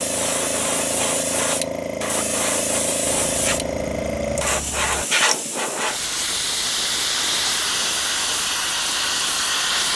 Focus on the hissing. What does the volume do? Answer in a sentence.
The volume of the hissing stays about the same.